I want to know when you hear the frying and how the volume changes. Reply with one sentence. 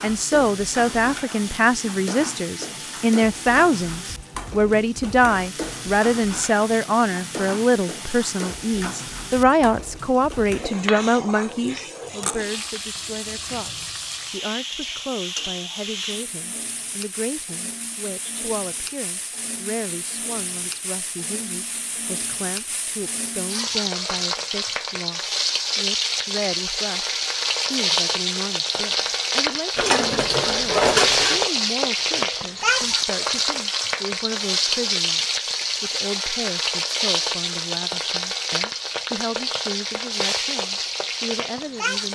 You can hear the frying from 0.0 to 42.0 s, getting louder.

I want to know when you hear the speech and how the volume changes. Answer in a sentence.
You can hear the speech from 0.0 to 42.0 s, getting quieter.